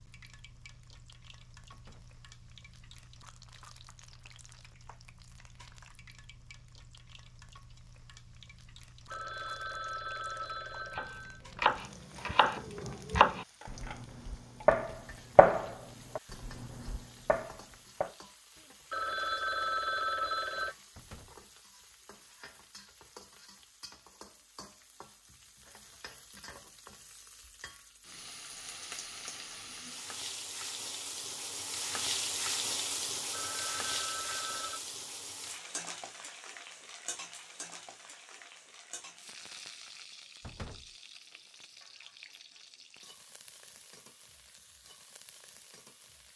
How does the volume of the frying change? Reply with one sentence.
The volume of the frying goes up, then down.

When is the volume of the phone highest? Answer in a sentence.
The loudest moment of the phone is at 20 seconds.